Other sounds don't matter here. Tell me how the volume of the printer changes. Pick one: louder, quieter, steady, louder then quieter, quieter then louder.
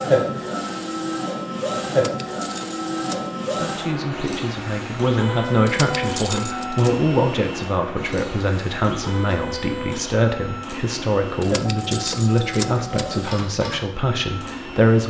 quieter.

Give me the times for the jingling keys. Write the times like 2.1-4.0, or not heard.
1.9-3.4, 5.7-6.9, 11.4-13.2.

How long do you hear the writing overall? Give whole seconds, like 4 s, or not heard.
not heard.